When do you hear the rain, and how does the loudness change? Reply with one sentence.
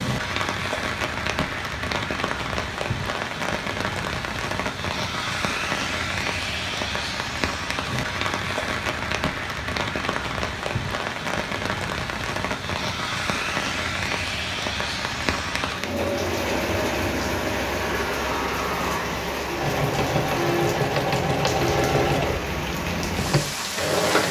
You can hear the rain from 0.0 to 24.2 s, at a steady volume.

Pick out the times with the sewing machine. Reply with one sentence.
The sewing machine can be heard from 15.8 to 24.2 s.